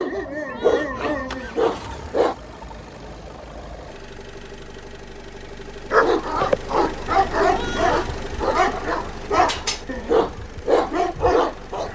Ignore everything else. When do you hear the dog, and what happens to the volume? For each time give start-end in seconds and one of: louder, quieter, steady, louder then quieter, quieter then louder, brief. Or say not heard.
0.0-2.4 brief
5.9-11.8 steady.